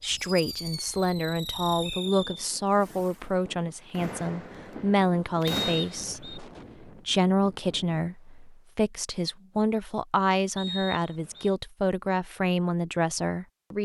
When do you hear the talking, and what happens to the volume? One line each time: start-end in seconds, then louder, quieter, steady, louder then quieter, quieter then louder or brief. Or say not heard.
0.0-13.7 steady.